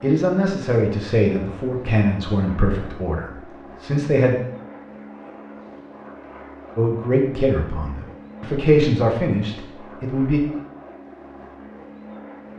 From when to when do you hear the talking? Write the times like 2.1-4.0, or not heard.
0.0-4.3, 6.8-10.4.